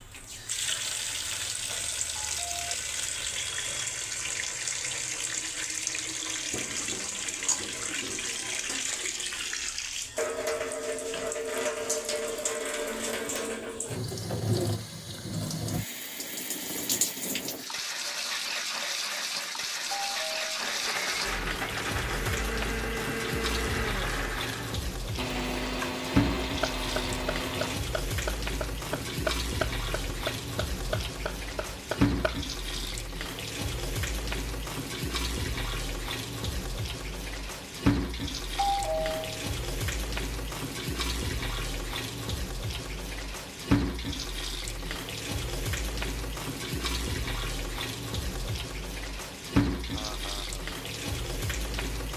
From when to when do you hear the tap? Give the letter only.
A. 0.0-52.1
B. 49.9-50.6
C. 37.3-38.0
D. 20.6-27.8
A.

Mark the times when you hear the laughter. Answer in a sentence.
You can hear the laughter from 49.9 to 50.6 s.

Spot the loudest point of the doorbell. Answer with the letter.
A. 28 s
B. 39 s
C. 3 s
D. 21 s
B.